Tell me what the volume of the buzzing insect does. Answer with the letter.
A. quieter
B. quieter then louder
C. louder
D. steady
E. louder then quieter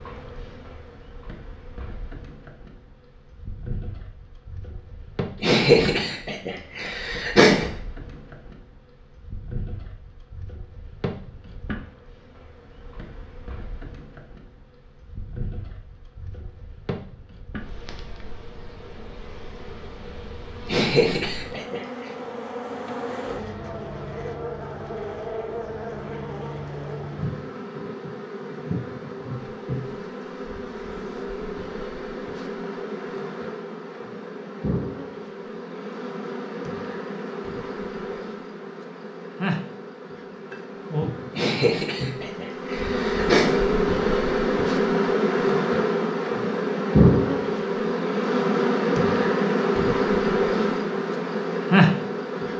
C.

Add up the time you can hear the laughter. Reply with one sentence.
The laughter can be heard for 6 seconds in total.